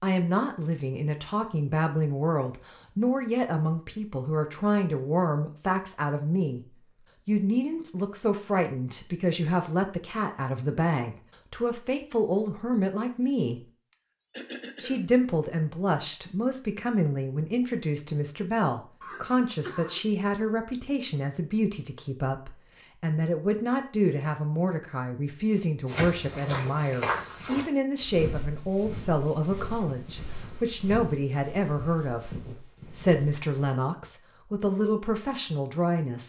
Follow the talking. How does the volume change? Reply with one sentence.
The loudness of the talking stays about the same.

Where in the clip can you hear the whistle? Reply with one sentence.
You can't hear the whistle here.